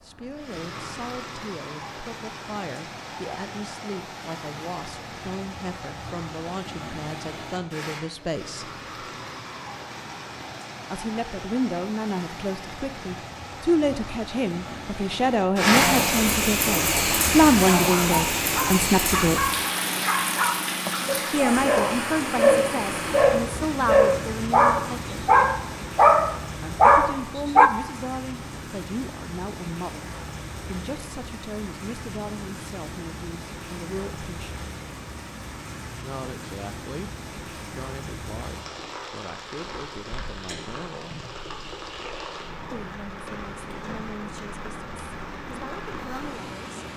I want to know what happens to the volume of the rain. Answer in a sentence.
The loudness of the rain goes up, then down.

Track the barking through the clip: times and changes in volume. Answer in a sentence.
The barking can be heard from 16.9 to 27.7 s, getting louder.